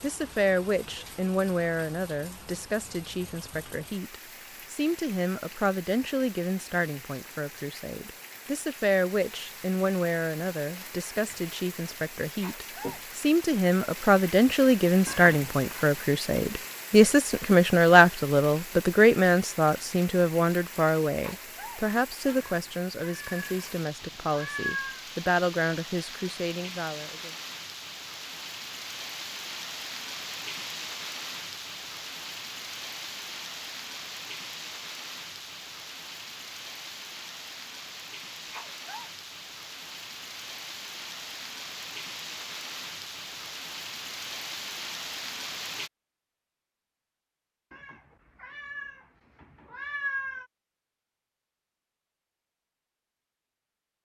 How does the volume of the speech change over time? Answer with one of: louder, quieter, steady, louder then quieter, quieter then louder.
louder then quieter.